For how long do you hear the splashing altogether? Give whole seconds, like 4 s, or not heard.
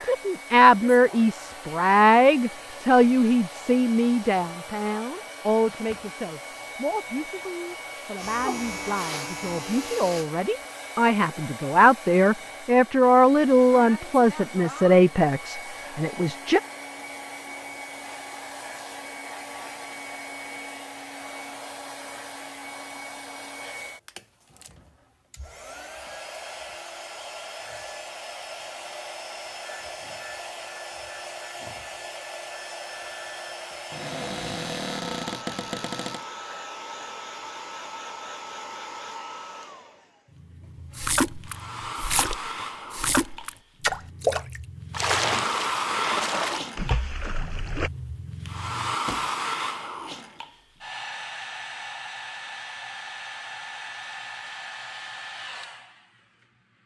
7 s.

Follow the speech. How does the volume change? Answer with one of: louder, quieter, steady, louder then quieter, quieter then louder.
quieter then louder.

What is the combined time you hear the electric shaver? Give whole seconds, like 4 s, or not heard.
2 s.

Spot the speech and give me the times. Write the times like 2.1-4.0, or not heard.
0.1-16.6.